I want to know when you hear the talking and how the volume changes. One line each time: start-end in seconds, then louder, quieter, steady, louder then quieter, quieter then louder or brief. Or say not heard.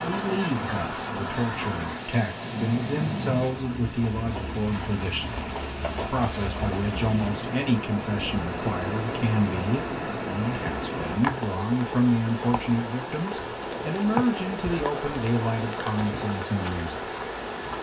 0.0-17.1 steady.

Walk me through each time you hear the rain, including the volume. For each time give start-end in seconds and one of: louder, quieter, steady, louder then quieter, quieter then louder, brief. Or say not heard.
0.0-17.7 steady.